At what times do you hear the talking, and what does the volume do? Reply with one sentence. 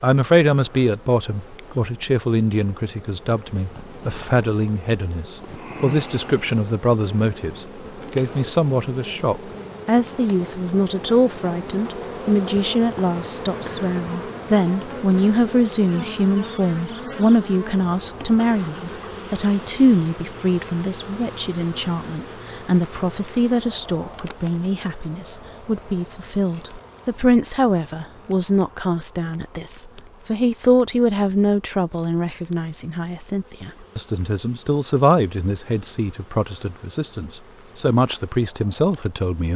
You can hear the talking from 0.0 to 39.5 s, at a steady volume.